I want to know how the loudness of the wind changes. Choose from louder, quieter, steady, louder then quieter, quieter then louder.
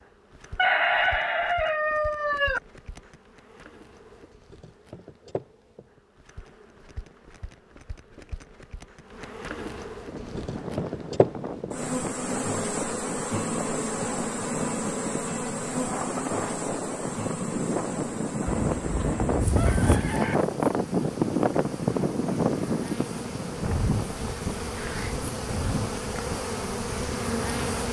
louder then quieter.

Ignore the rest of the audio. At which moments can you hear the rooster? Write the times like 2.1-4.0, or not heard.
0.6-2.6, 18.4-20.4.